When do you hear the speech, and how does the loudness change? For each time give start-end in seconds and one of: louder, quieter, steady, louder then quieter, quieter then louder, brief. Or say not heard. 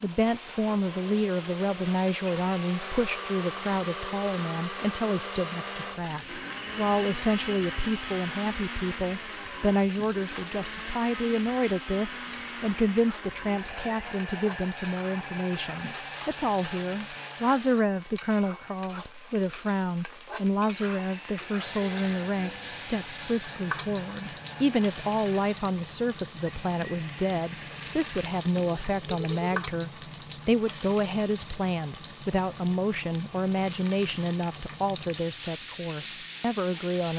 0.0-37.1 steady.